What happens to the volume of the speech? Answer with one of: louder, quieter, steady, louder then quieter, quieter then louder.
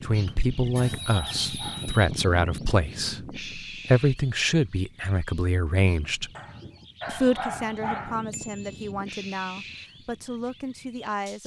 quieter.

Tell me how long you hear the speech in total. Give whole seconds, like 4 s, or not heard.
11 s.